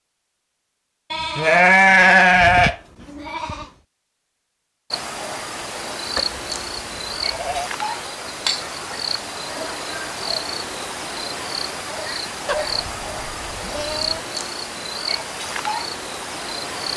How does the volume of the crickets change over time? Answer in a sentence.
The loudness of the crickets stays about the same.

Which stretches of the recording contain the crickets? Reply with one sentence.
You can hear the crickets from 4.9 to 16.9 s.